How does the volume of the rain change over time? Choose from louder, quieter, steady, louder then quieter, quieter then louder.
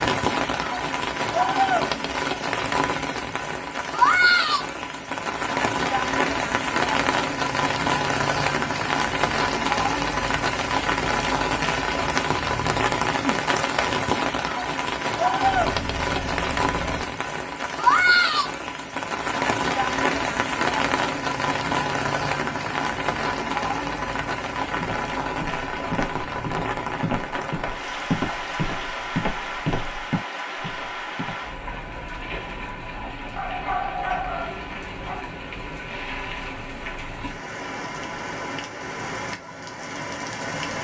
quieter.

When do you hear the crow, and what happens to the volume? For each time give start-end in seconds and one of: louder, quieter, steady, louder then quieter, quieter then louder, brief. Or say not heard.
not heard.